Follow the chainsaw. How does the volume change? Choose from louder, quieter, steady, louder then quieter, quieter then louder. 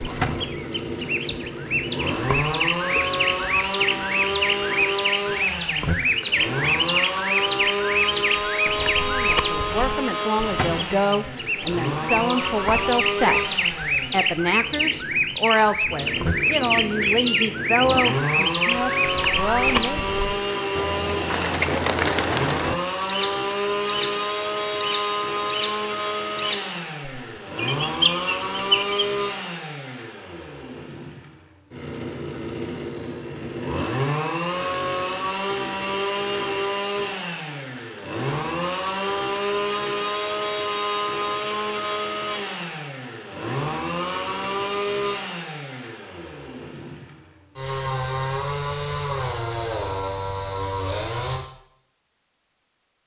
steady.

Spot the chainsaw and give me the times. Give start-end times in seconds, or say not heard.
0.0-51.5.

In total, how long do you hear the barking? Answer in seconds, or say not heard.
not heard.